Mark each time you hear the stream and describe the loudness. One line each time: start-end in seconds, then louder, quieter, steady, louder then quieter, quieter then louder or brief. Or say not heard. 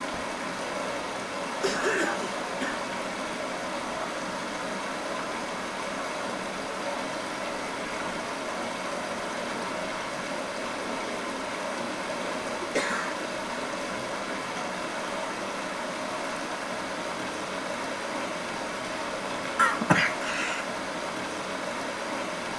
0.0-22.5 steady.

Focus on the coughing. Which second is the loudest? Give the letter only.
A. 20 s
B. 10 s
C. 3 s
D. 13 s
A.